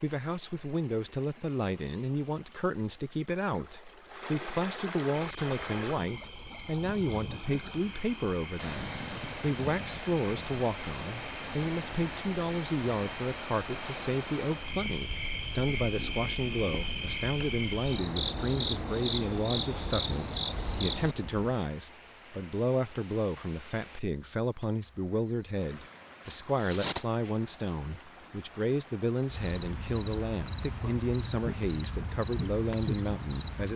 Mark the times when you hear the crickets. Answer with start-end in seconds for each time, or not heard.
5.1-33.7.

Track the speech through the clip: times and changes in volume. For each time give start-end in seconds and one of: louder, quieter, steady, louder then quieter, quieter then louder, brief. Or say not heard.
0.0-33.7 steady.